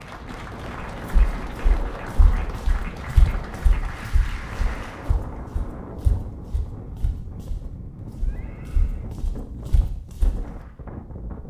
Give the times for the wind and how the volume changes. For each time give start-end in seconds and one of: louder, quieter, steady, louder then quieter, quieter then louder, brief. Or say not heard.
0.0-11.4 steady.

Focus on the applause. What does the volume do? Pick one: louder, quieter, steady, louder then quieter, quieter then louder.
steady.